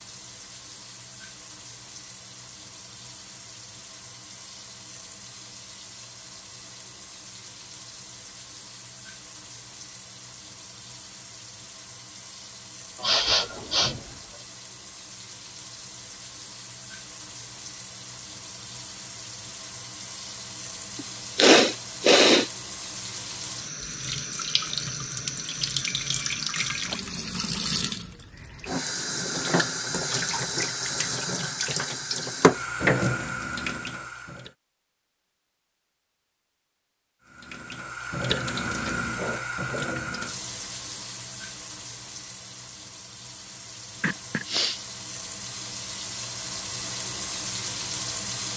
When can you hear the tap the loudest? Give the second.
33 s.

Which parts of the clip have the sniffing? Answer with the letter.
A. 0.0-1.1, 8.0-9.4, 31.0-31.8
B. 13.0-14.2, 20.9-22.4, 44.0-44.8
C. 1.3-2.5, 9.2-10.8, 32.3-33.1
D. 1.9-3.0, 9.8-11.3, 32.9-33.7
B.